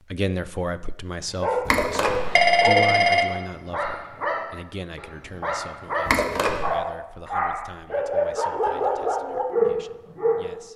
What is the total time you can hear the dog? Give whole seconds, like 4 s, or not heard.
9 s.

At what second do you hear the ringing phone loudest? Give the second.
3 s.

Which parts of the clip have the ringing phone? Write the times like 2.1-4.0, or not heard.
1.6-3.2, 6.0-6.7.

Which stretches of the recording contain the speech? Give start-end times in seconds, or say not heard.
0.1-10.7.